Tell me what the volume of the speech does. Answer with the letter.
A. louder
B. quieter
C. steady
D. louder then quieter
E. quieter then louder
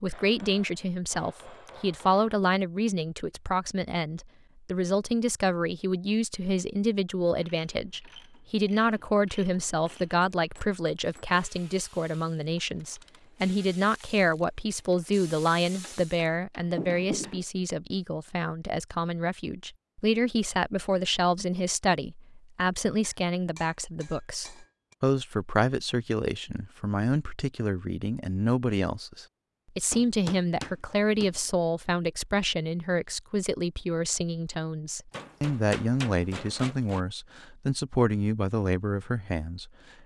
C.